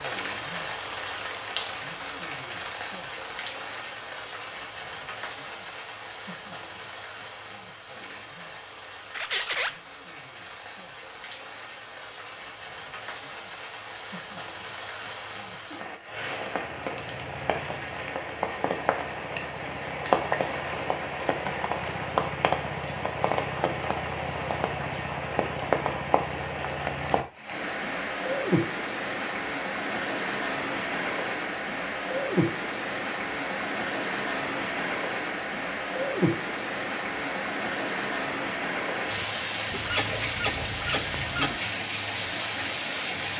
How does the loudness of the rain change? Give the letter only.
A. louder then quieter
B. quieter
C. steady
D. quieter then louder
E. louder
E.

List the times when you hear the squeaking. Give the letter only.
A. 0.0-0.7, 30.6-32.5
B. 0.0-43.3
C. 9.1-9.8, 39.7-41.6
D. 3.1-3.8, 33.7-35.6
C.